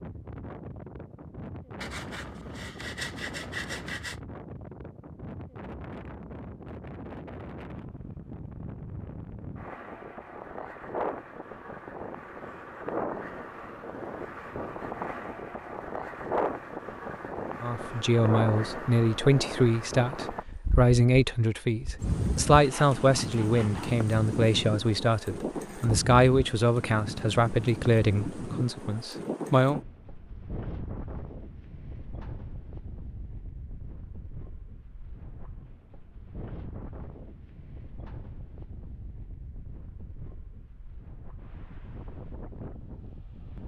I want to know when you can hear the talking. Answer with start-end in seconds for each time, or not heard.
17.6-29.8.